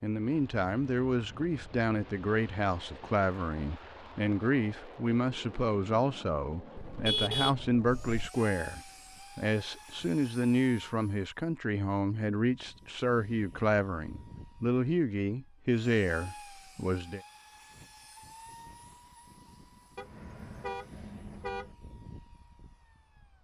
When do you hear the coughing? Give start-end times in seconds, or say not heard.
not heard.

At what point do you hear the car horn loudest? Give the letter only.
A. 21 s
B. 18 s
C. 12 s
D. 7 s
D.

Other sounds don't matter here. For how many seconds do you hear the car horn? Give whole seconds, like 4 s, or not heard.
3 s.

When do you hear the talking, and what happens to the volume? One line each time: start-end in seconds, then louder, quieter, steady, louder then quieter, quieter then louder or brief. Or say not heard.
0.0-17.2 steady.